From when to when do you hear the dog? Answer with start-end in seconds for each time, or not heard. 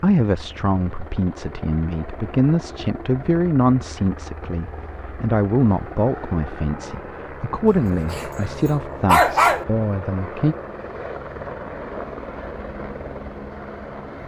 8.1-9.7.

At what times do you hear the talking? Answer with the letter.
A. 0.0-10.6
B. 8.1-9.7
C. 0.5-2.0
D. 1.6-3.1
A.